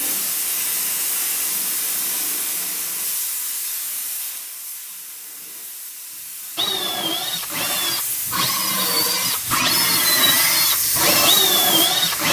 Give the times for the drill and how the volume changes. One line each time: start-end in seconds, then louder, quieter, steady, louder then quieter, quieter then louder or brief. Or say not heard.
6.5-12.2 louder.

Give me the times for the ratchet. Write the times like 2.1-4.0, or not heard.
not heard.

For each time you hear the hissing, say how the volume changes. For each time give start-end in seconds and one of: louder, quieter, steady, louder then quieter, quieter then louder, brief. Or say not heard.
0.0-12.2 quieter then louder.